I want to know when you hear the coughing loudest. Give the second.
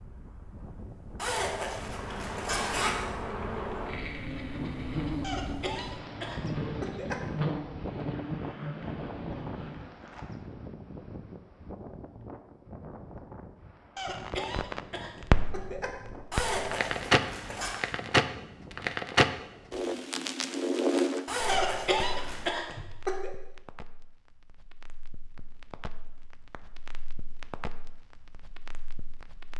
22 s.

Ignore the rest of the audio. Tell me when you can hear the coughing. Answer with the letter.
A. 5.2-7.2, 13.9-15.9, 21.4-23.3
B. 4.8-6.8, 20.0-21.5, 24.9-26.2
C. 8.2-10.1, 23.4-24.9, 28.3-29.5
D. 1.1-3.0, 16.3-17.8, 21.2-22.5
A.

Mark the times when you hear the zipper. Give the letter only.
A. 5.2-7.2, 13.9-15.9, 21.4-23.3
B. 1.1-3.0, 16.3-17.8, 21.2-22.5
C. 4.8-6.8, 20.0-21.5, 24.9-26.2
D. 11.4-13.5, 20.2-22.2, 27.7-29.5
B.